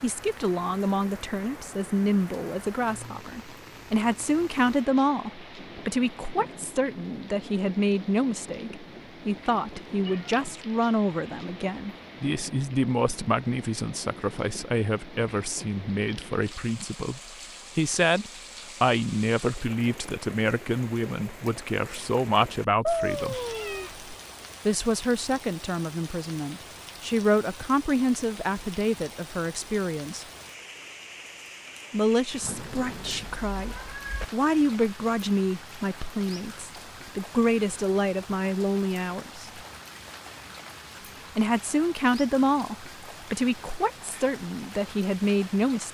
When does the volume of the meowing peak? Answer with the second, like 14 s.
23 s.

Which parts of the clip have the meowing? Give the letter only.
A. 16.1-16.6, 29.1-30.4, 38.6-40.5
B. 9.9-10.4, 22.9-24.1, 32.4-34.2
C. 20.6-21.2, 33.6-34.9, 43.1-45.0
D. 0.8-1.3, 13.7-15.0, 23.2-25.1
B.